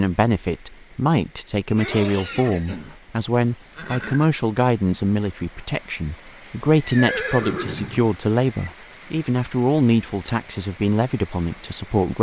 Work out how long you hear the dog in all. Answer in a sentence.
You can't hear the dog here.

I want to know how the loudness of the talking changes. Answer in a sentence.
The volume of the talking stays about the same.